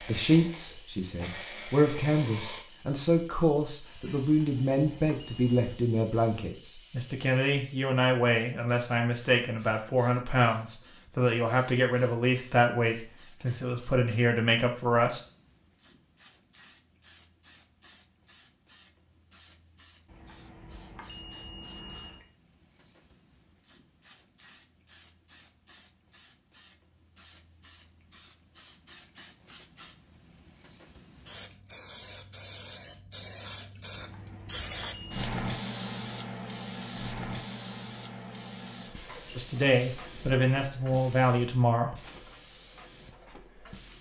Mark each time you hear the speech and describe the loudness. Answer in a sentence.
The speech can be heard from 0.0 to 15.2 s, at a steady volume; and briefly from 39.4 to 42.0 s.